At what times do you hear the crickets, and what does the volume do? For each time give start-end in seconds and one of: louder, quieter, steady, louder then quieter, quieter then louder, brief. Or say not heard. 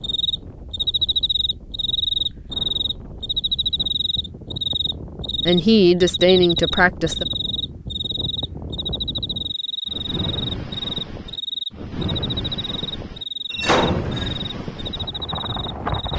0.0-16.1 quieter.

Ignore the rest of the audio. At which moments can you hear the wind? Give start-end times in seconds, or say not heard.
0.0-16.1.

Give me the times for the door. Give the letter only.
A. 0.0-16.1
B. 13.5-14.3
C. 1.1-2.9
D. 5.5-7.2
B.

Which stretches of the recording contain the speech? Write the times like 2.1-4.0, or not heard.
5.5-7.2.